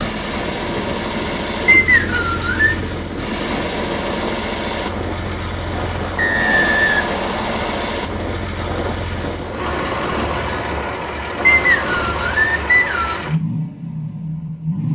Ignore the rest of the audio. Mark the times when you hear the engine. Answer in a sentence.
The engine can be heard from 0.0 to 14.9 s.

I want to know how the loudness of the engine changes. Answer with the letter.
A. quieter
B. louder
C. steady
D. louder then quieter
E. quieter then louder
C.